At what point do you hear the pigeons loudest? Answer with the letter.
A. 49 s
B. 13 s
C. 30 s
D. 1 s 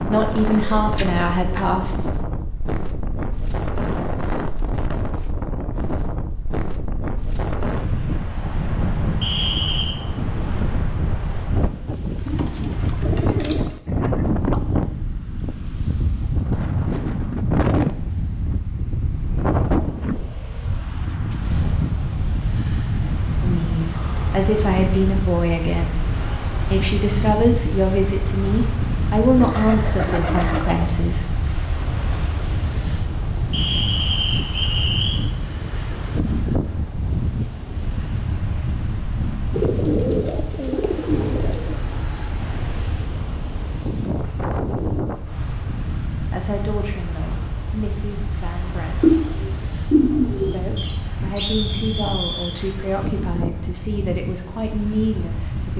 A.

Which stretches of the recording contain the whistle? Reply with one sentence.
You can hear the whistle from 9.2 to 9.9 s, from 33.5 to 35.2 s and from 50.8 to 52.5 s.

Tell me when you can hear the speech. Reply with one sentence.
You can hear the speech from 0.0 to 2.0 s, from 23.4 to 31.2 s, from 46.3 to 49.1 s and from 50.5 to 55.7 s.